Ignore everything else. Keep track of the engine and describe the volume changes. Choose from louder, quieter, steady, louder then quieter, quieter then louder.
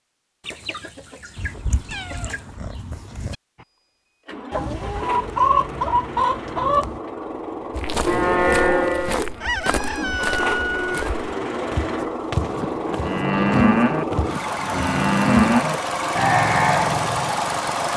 louder.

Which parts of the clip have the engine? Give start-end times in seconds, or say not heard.
3.5-17.9.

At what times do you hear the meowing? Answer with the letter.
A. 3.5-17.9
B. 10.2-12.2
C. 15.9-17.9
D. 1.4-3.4
D.